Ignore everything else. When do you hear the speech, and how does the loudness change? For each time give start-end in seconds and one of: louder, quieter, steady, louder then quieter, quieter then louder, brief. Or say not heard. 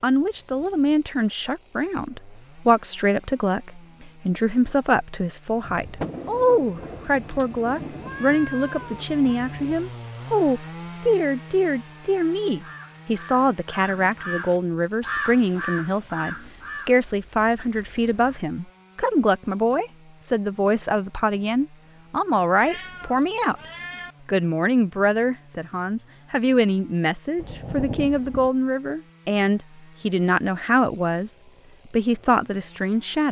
0.0-23.6 steady
24.2-33.2 steady.